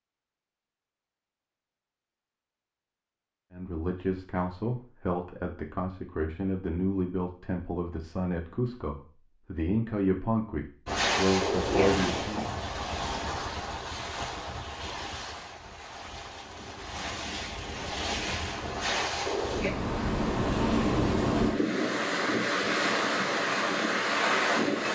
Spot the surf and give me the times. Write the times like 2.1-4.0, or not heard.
10.8-24.8.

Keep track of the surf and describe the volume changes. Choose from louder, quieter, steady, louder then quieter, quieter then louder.
quieter then louder.